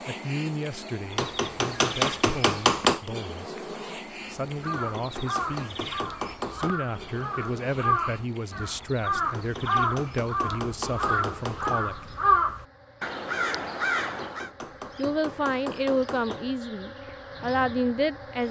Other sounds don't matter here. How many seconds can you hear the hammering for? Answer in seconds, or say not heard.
9 s.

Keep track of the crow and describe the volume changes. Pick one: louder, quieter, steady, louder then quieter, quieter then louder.
louder.